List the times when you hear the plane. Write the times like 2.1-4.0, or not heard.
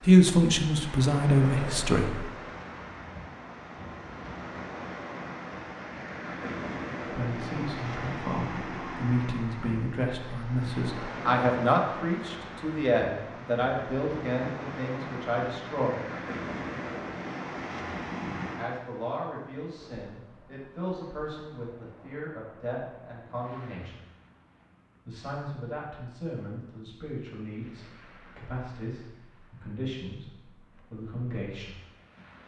not heard.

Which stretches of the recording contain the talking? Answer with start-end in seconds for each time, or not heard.
0.1-2.2, 7.0-16.0, 18.6-24.0, 25.1-31.8.